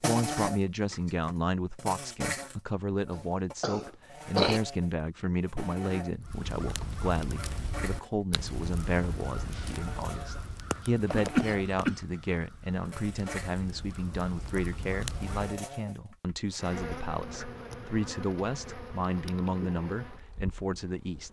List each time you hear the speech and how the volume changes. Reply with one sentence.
You can hear the speech from 0.0 to 21.2 s, at a steady volume.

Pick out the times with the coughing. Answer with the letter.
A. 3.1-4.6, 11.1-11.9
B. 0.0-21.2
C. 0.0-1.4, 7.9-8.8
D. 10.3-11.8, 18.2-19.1
A.